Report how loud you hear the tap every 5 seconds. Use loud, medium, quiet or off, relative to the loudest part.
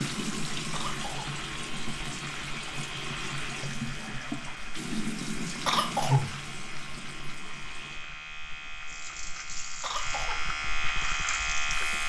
loud, loud, medium.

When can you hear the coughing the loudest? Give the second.
6 s.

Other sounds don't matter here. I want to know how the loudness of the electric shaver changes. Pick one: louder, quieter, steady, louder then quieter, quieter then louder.
louder.